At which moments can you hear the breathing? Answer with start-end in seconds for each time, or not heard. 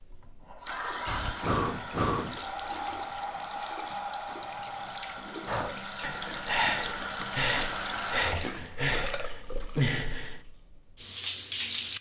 1.1-10.4.